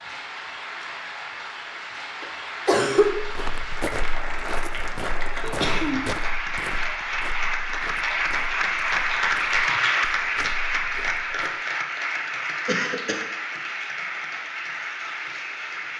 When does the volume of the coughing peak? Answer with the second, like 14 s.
3 s.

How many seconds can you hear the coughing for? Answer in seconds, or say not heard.
2 s.